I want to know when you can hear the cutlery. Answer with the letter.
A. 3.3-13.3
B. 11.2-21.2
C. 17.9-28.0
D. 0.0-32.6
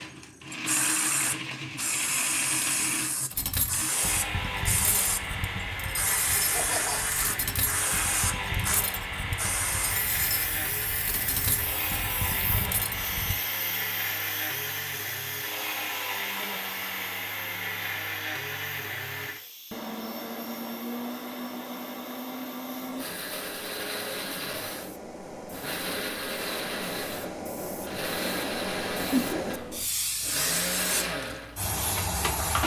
A.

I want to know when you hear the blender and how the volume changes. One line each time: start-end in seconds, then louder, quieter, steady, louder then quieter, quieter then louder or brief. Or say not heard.
0.0-32.6 steady.